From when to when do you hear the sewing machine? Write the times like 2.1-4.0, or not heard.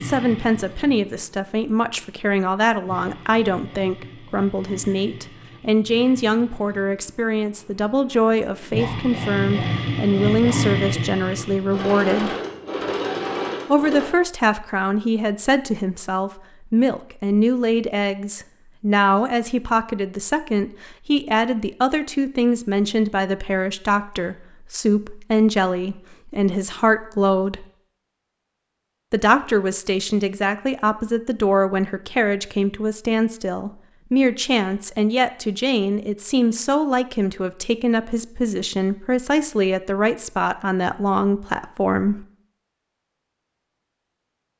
0.0-14.1.